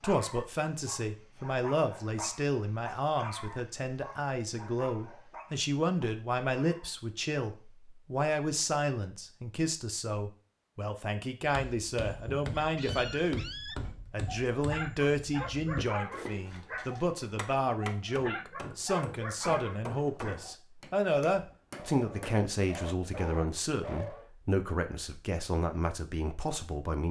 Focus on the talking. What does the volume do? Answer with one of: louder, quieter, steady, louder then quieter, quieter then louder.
steady.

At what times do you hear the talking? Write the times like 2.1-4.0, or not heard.
0.0-27.0.